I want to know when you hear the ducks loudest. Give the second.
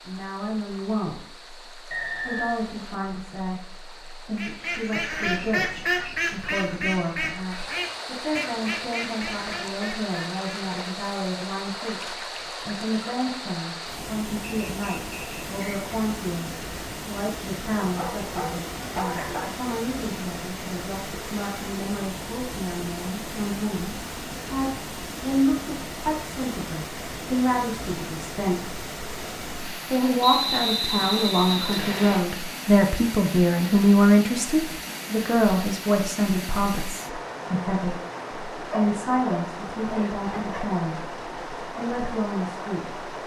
6 s.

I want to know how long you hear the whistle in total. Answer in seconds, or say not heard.
4 s.